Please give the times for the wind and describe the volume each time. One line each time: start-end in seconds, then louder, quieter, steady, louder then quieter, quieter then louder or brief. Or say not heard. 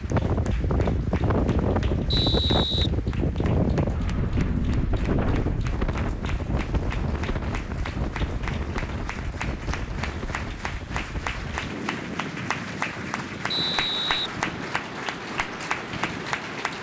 0.0-16.7 quieter.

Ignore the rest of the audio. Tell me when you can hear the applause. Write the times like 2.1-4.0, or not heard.
0.0-16.7.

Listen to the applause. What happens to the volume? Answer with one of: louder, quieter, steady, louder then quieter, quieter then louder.
louder.